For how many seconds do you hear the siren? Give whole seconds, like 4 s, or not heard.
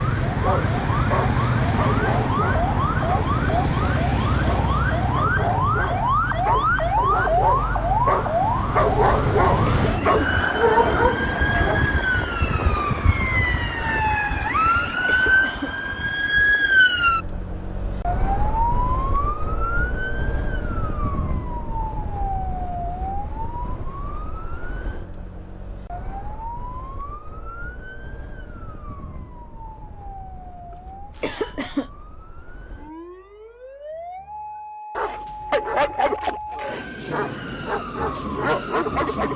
39 s.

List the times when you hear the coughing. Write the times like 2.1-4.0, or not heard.
9.6-10.9, 15.0-15.8, 31.1-31.9.